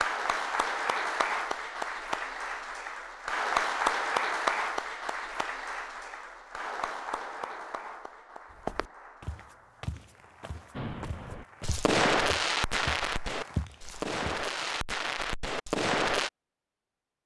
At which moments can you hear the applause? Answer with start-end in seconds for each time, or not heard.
0.0-14.8.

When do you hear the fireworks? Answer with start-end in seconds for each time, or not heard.
10.8-16.3.